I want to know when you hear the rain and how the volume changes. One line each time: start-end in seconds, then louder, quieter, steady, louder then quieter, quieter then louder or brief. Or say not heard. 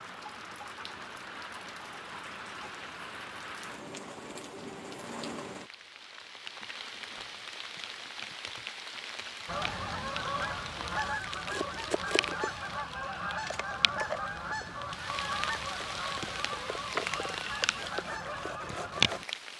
0.0-19.5 louder.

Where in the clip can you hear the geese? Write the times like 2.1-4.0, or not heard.
9.4-19.2.